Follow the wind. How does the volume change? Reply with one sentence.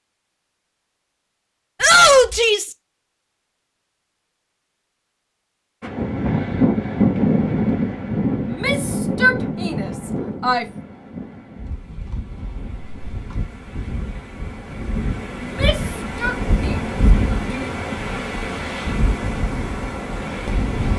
The volume of the wind goes down, then up.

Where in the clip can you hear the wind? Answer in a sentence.
The wind can be heard from 5.8 to 20.9 s.